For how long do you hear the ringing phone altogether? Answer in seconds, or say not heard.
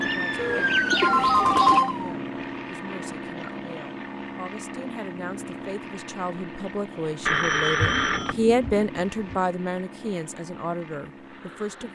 3 s.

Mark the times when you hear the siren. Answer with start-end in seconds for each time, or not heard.
0.0-2.1.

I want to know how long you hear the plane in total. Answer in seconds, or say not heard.
12 s.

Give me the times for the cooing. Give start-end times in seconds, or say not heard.
0.0-1.8, 7.8-9.4.